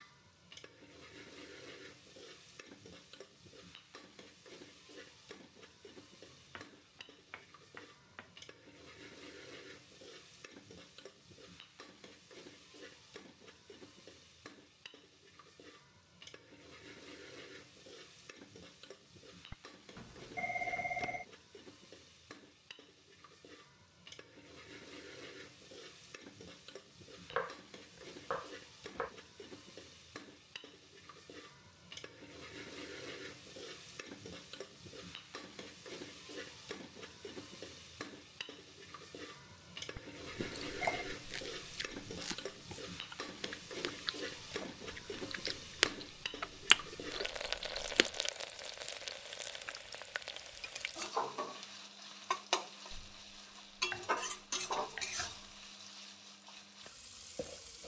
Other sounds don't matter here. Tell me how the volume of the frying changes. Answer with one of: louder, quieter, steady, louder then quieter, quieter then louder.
louder.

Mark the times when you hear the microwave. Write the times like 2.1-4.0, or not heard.
not heard.